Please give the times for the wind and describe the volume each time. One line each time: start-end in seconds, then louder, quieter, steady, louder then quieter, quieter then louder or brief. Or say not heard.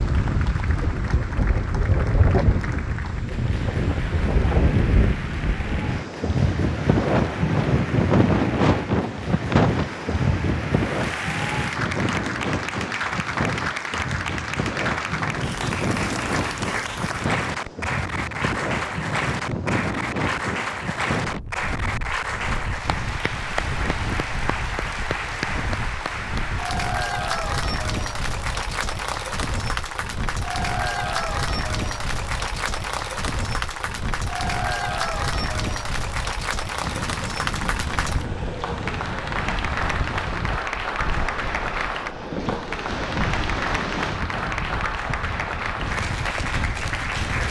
0.0-47.4 quieter.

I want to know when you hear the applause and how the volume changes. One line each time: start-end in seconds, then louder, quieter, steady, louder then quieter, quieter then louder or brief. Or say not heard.
0.0-47.4 louder.